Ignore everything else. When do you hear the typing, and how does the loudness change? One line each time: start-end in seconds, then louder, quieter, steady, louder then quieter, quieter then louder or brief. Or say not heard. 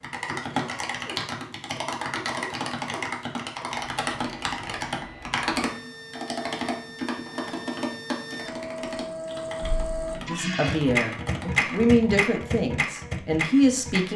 0.0-12.2 quieter.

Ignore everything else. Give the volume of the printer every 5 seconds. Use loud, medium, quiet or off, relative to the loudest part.
quiet, medium, loud.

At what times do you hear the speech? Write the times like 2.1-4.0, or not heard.
10.2-14.1.